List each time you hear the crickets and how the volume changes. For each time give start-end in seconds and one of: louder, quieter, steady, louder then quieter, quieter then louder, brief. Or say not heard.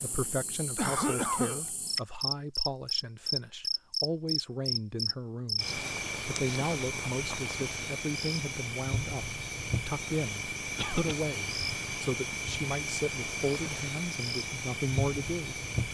0.0-15.8 steady.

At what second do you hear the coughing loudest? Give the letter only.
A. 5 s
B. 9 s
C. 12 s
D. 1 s
D.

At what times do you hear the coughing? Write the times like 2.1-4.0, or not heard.
0.8-1.6, 10.8-11.2.